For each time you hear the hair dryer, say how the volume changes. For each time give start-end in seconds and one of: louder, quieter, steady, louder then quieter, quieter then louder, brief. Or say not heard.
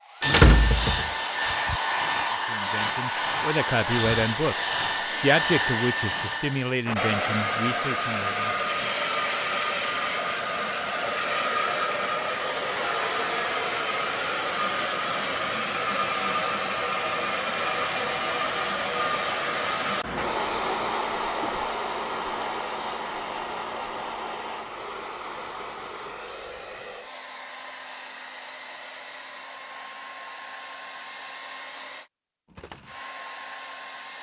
0.0-34.1 quieter.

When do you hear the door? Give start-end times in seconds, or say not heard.
0.2-1.8.